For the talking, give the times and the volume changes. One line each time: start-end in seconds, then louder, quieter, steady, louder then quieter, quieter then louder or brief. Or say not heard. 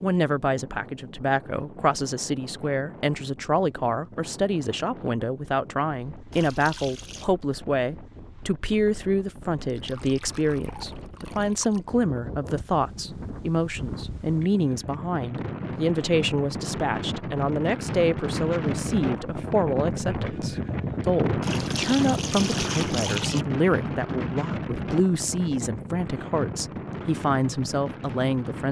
0.0-28.6 steady.